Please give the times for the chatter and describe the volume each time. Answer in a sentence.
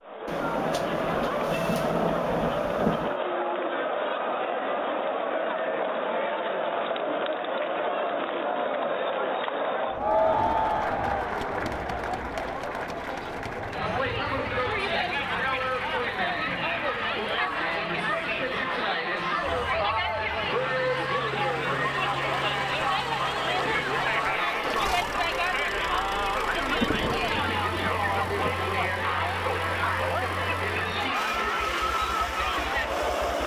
You can hear the chatter from 0.0 to 33.4 s, at a steady volume.